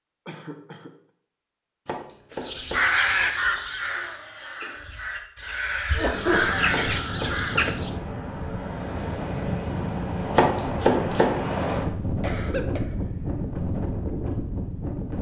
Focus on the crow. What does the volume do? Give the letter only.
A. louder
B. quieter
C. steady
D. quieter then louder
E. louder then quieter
D.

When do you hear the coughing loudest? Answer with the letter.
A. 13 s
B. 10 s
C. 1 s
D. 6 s
D.